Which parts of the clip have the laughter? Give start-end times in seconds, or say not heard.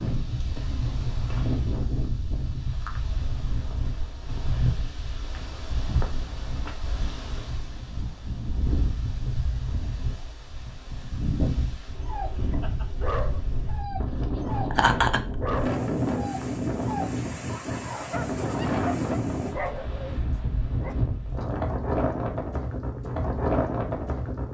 14.7-15.2.